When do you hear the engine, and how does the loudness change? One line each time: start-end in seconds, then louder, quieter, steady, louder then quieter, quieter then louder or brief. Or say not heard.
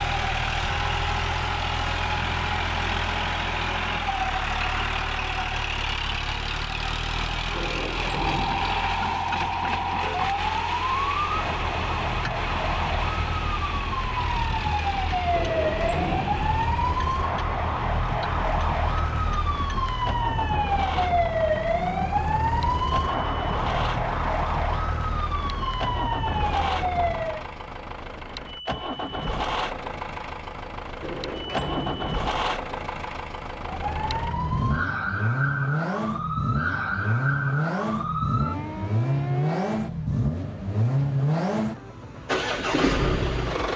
0.0-43.7 quieter then louder.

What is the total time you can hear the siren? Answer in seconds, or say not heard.
26 s.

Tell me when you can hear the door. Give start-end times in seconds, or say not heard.
7.5-8.8, 15.3-16.5, 31.0-32.2.